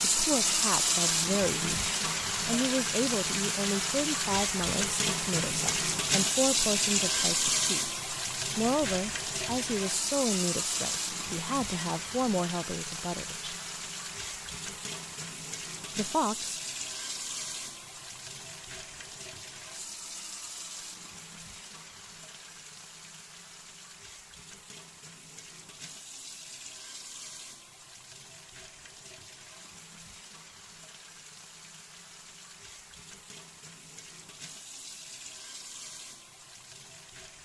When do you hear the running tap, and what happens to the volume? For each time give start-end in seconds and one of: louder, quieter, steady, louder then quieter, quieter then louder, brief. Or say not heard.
0.0-37.3 quieter.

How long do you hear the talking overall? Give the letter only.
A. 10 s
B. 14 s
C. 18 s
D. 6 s
B.